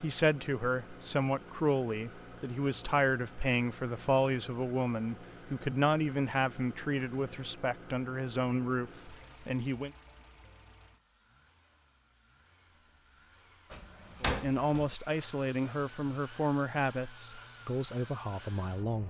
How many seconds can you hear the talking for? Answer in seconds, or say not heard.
15 s.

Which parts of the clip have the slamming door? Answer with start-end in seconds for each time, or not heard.
13.7-14.9.